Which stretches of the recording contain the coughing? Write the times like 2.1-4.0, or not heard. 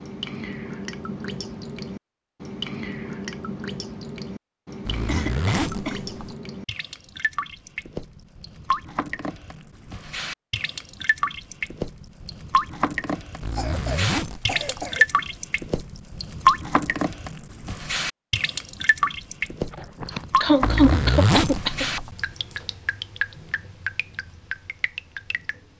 5.0-6.0, 13.5-15.1, 19.7-21.9.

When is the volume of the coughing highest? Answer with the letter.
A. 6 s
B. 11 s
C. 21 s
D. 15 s
C.